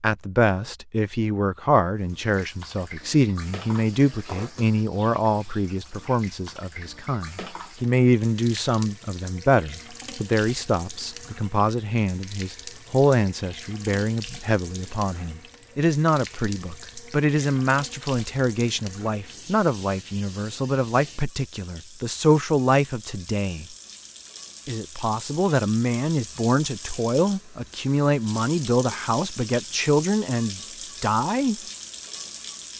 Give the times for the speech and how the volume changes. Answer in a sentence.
The speech can be heard from 0.0 to 23.6 s, at a steady volume; and from 24.6 to 31.6 s, at a steady volume.